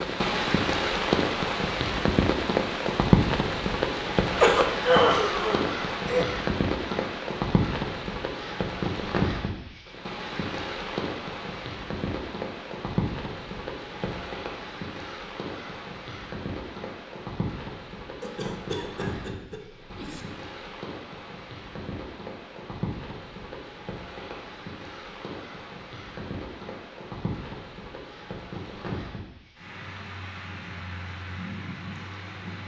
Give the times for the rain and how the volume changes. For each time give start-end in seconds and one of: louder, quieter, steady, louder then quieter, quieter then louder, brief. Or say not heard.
0.0-32.6 quieter.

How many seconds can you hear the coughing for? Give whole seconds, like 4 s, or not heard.
4 s.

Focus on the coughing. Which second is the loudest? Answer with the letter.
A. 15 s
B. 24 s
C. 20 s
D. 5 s
D.